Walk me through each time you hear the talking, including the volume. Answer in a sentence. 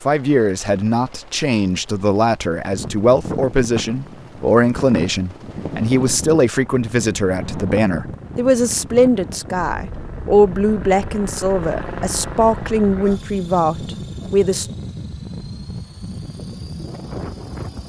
You can hear the talking from 0.0 to 14.7 s, at a steady volume.